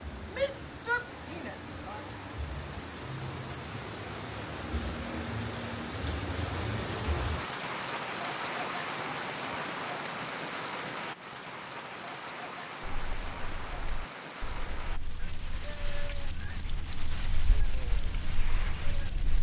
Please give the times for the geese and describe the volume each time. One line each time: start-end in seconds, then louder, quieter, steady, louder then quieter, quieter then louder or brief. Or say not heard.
12.8-19.3 louder.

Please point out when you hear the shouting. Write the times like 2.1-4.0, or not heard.
0.3-2.0.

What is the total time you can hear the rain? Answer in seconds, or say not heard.
19 s.